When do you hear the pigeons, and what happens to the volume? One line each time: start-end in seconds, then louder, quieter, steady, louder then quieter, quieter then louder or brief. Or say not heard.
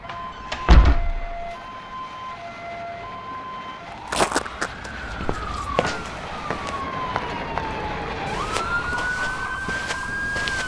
not heard.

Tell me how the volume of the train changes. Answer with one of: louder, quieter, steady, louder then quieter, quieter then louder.
louder.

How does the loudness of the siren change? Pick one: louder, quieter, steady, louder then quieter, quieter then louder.
louder.